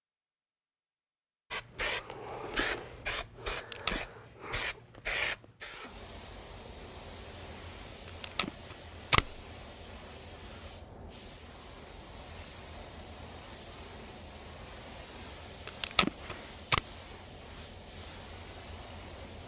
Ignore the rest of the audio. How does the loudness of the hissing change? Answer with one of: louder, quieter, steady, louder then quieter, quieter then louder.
quieter.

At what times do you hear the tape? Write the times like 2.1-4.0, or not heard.
3.5-4.0, 8.1-9.3, 15.7-16.8.